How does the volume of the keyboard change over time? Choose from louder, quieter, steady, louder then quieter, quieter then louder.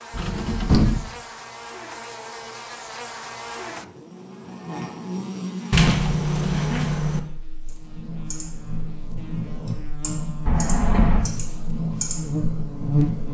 louder.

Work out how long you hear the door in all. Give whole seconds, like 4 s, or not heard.
3 s.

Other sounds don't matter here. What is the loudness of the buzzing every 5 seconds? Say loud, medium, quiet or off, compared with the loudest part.
medium, medium, loud.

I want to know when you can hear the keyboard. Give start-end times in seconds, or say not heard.
7.7-13.2.